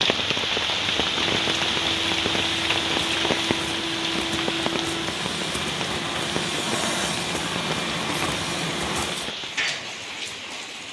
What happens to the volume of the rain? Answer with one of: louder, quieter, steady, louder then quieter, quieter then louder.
quieter.